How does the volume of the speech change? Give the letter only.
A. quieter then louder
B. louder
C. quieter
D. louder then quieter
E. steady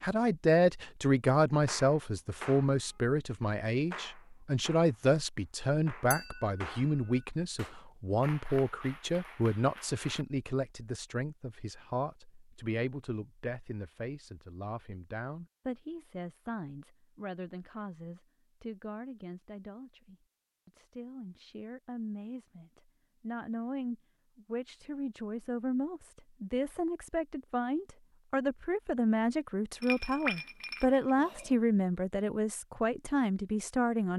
A.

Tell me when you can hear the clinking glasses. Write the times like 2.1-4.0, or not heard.
6.1-6.5, 29.8-31.5.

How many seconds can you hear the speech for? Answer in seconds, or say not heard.
34 s.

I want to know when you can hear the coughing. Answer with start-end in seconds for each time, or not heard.
not heard.